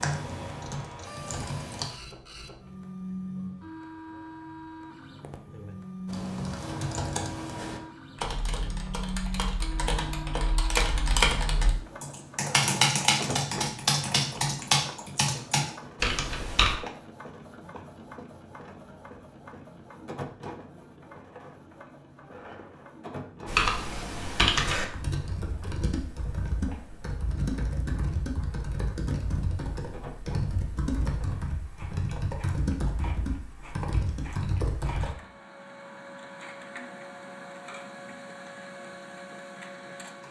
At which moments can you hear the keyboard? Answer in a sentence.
You can hear the keyboard from 0.0 to 1.9 s, from 6.0 to 16.8 s and from 23.4 to 35.1 s.